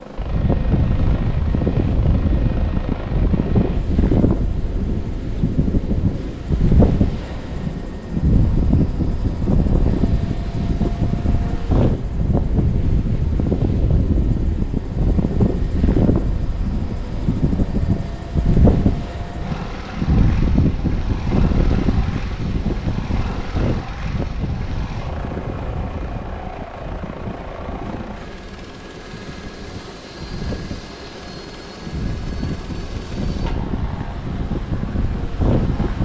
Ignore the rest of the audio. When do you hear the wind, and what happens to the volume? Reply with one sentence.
The wind can be heard from 0.1 to 35.9 s, getting quieter.